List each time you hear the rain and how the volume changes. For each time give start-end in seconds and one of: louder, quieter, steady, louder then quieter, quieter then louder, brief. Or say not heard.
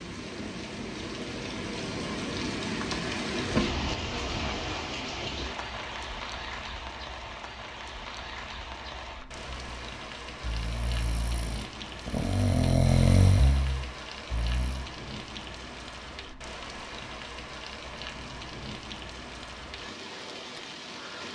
0.0-21.2 quieter.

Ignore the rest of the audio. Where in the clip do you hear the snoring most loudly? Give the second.
13 s.